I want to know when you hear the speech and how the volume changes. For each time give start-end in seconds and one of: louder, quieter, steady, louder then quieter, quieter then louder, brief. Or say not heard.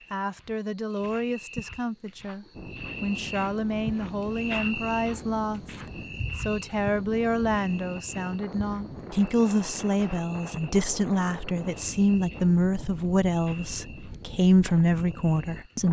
0.1-15.8 louder.